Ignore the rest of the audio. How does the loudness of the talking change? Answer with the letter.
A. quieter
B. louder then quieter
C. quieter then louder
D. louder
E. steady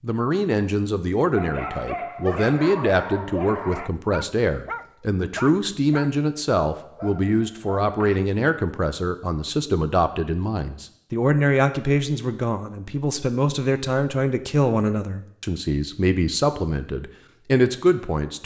E.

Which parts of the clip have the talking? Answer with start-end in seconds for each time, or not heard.
0.0-18.4.